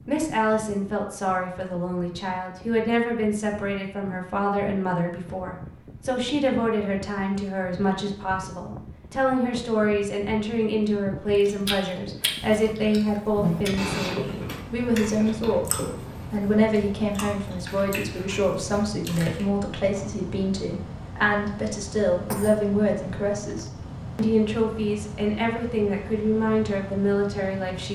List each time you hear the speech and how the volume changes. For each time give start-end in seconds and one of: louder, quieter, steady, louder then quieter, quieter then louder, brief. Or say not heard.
0.1-27.9 steady.